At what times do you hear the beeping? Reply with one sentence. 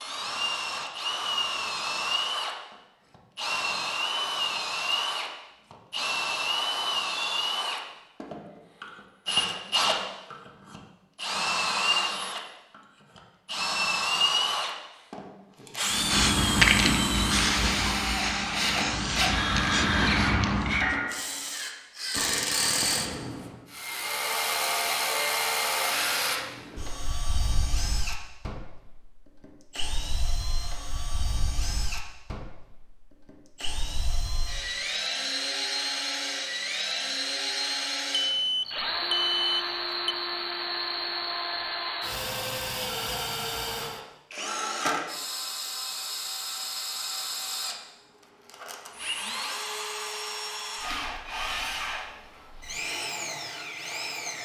The beeping can be heard from 38.3 to 40.1 s.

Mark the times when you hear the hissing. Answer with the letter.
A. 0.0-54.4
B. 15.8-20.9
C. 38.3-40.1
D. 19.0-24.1
B.